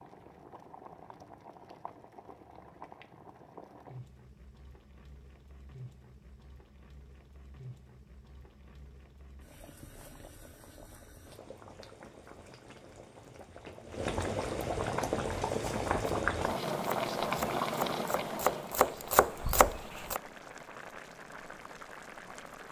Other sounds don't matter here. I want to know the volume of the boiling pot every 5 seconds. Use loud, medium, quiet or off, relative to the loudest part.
quiet, quiet, medium, loud, quiet.